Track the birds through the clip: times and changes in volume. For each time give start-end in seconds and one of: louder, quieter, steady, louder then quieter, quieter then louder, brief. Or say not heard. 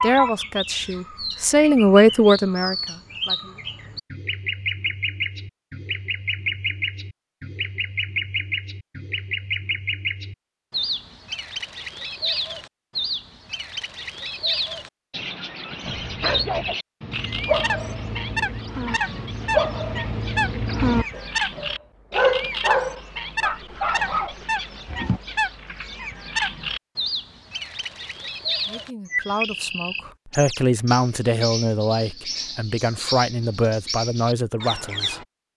0.0-35.2 steady.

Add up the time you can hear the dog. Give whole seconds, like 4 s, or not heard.
9 s.